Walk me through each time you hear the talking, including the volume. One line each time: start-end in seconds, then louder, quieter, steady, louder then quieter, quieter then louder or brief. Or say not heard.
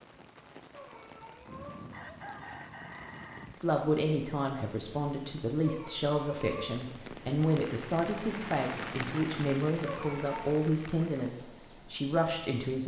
3.5-12.8 steady.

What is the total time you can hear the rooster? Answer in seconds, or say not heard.
2 s.